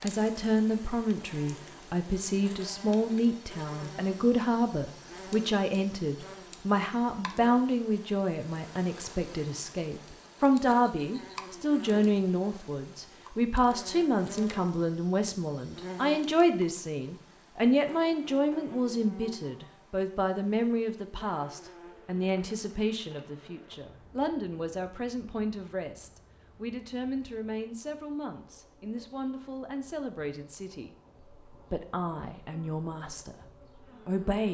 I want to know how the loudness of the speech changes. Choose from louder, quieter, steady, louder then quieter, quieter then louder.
quieter.